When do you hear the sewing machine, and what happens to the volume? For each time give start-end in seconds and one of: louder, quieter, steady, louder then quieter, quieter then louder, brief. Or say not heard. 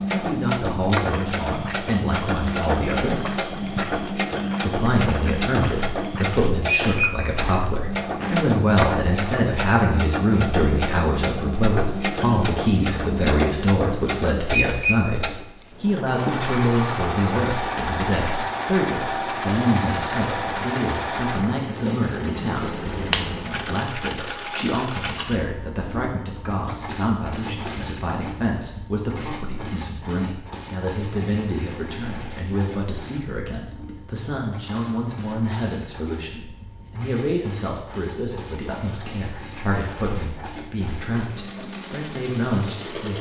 0.0-43.1 quieter.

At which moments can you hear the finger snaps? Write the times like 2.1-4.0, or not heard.
22.9-23.6.